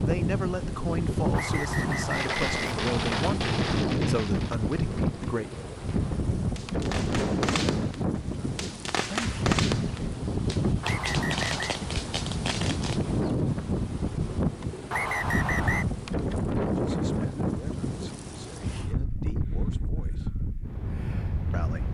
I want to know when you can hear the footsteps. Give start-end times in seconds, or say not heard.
not heard.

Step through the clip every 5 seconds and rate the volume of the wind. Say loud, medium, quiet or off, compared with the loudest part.
loud, loud, loud, loud, medium.